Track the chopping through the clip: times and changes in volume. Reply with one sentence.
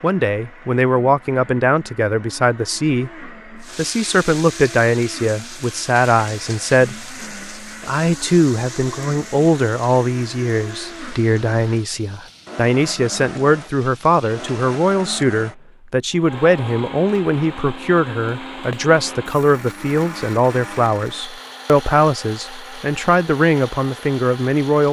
The chopping can't be heard in this clip.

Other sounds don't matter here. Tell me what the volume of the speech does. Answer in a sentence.
The volume of the speech stays about the same.